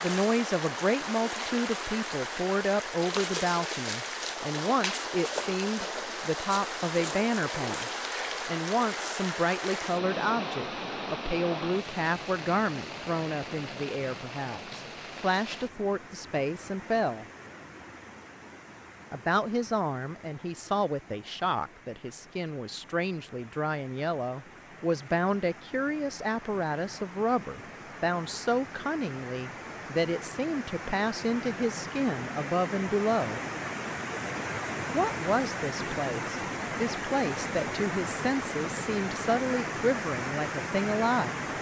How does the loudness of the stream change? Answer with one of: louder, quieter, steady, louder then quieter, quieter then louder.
quieter then louder.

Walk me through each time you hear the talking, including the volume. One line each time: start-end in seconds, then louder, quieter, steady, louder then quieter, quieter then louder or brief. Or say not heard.
0.0-17.2 steady
19.1-33.4 steady
34.9-41.4 steady.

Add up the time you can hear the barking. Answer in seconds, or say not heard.
not heard.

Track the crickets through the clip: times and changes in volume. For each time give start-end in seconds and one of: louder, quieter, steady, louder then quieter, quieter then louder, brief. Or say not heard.
not heard.